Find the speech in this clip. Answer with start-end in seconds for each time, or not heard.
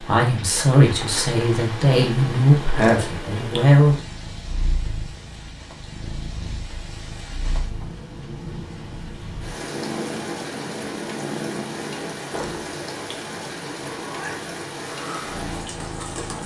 0.0-4.0.